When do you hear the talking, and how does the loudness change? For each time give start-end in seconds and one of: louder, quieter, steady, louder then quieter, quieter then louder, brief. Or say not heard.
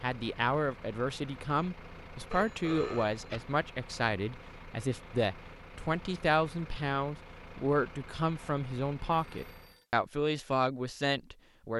0.0-11.7 steady.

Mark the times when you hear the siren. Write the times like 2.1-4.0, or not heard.
not heard.